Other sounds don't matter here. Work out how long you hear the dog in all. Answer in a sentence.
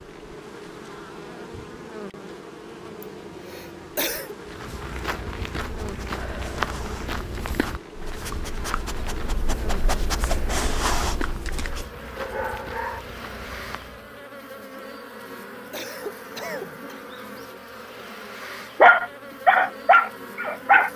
The dog can be heard for 9 seconds in total.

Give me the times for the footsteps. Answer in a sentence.
The footsteps can be heard from 4.4 to 14.2 s.